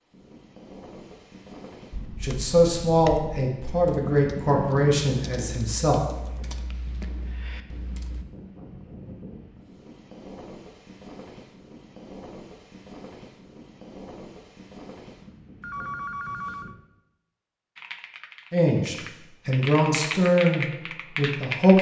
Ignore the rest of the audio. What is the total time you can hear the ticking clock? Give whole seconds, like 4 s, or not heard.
not heard.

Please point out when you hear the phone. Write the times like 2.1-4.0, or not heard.
15.6-16.8.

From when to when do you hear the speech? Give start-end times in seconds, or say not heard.
2.2-6.0, 18.5-21.7.